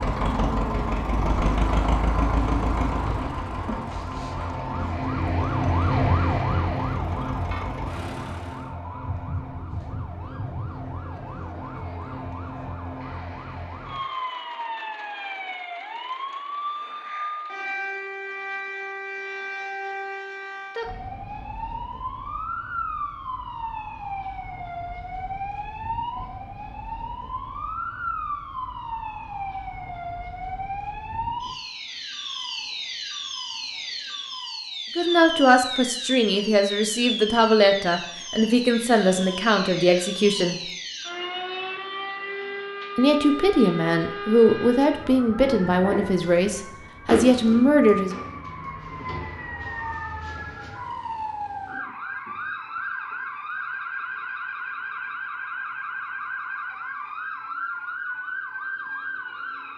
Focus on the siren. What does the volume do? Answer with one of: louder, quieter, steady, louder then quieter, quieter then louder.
steady.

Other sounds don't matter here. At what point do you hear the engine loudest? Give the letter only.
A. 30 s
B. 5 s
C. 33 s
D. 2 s
D.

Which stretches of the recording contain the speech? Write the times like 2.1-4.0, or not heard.
35.0-40.5, 43.0-48.1.